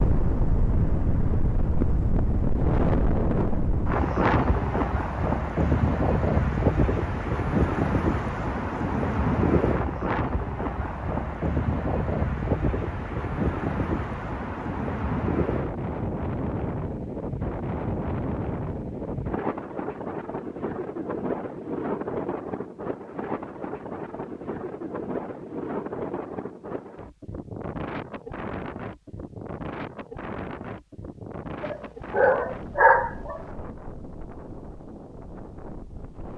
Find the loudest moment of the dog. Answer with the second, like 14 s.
33 s.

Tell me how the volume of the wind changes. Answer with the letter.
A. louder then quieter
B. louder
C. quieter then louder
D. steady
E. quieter
E.